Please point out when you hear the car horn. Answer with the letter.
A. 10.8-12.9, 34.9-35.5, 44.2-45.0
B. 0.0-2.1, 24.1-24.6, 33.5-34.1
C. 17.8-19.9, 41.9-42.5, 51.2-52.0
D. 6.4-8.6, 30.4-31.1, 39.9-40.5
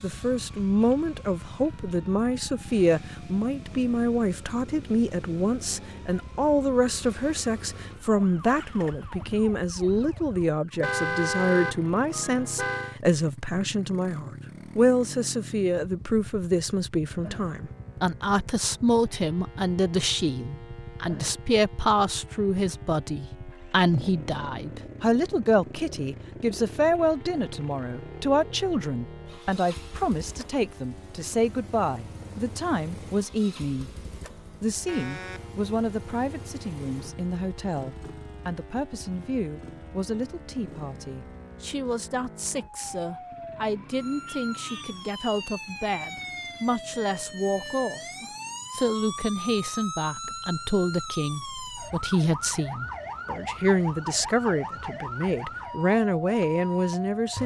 A.